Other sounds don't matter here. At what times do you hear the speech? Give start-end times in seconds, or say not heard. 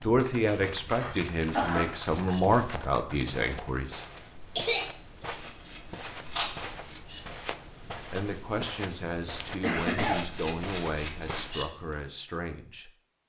0.0-4.0, 8.1-12.9.